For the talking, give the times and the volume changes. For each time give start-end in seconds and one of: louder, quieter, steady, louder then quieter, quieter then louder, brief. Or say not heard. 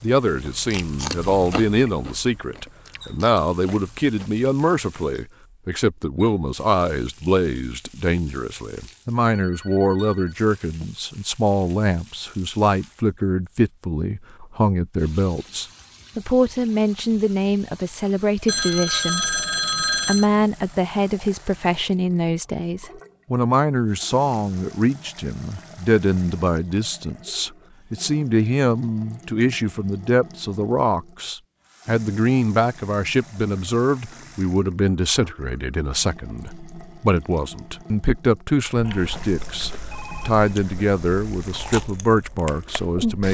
0.0-19.3 steady
20.1-43.2 steady.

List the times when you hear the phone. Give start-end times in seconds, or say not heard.
9.3-10.9, 18.4-20.2, 38.8-40.5.